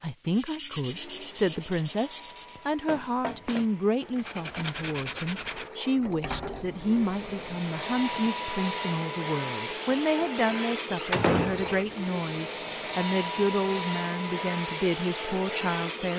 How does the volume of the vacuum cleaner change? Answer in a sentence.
The volume of the vacuum cleaner goes up.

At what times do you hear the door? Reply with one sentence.
The door can be heard from 2.5 to 3.7 s, from 6.0 to 8.2 s and from 11.1 to 12.0 s.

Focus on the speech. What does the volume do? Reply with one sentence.
The loudness of the speech stays about the same.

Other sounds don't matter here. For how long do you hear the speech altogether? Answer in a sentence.
You can hear the speech for 16 seconds altogether.